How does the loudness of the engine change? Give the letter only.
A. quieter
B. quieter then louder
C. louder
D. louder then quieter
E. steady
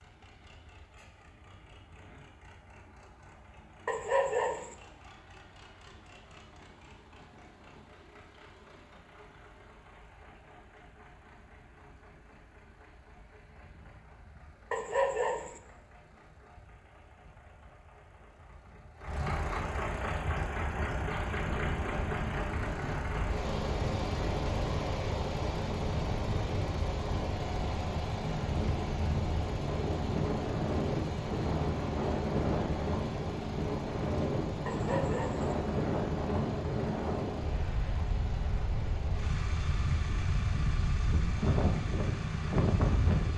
D.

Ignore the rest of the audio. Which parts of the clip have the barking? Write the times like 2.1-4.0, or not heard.
3.9-4.8, 14.7-15.6, 34.6-35.5.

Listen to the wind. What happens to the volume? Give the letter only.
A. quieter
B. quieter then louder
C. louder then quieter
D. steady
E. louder
E.